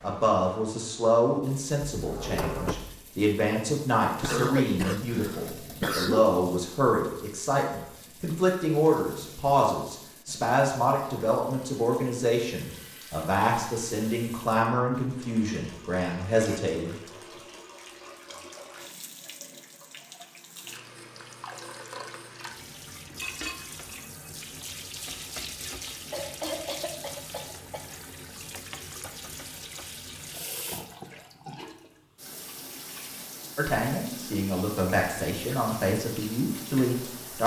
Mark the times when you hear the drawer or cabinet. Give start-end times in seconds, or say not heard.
1.9-3.0.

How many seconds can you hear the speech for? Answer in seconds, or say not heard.
21 s.